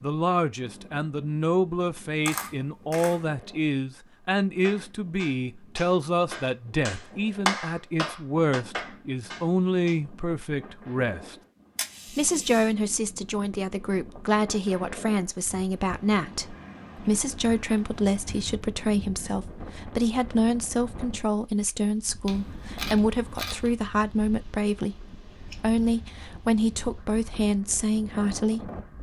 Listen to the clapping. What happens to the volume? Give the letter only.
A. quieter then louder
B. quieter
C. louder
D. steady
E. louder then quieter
E.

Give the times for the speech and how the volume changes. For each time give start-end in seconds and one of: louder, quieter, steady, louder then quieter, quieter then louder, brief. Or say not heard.
0.0-11.3 steady
12.1-28.7 steady.